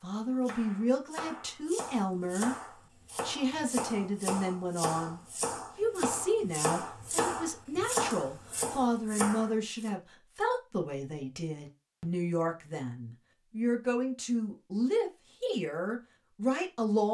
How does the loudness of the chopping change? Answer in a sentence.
The loudness of the chopping goes up.